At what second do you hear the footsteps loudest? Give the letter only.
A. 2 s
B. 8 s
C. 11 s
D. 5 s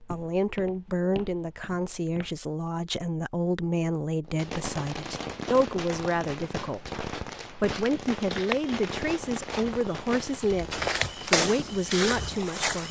C.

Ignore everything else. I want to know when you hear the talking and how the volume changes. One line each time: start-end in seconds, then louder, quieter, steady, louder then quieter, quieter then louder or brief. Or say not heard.
0.1-12.8 steady.